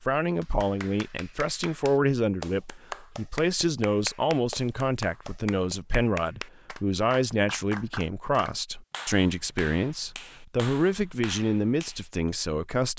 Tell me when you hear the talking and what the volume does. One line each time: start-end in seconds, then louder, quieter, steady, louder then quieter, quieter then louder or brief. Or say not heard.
0.0-12.9 steady.